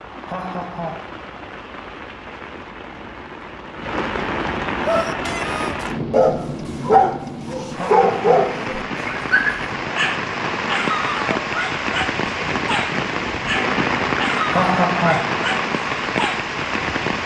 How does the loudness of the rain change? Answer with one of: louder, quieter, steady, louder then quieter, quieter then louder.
louder.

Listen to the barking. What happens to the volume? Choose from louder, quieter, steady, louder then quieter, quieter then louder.
quieter.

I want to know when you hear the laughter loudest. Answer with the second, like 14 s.
15 s.